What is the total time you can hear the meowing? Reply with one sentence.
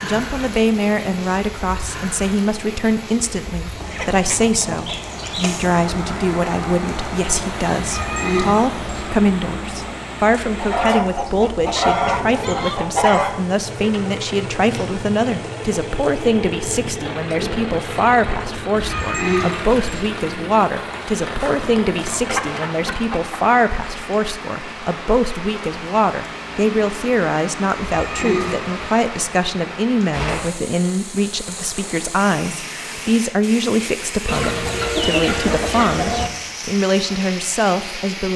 You can hear the meowing for 4 seconds altogether.